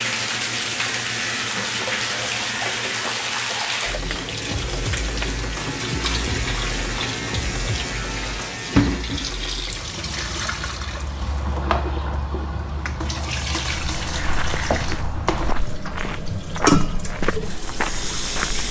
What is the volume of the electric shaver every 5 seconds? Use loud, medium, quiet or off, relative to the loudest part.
loud, loud, off, off.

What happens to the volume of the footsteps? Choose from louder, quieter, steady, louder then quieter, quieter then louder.
louder.